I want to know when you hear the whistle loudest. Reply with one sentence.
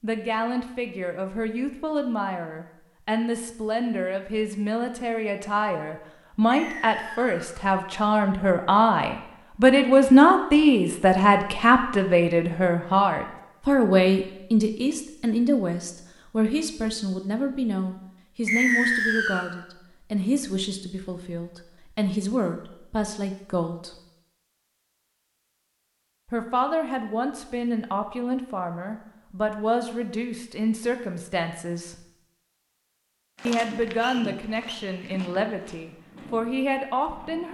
The loudest moment of the whistle is at 19 seconds.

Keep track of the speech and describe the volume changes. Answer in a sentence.
The loudness of the speech goes up, then down.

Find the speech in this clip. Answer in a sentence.
The speech can be heard from 0.0 to 23.9 s, from 26.2 to 31.9 s and from 33.5 to 37.5 s.